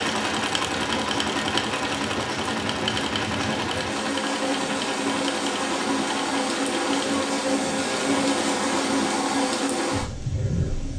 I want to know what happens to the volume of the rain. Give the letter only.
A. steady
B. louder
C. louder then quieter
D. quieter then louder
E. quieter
B.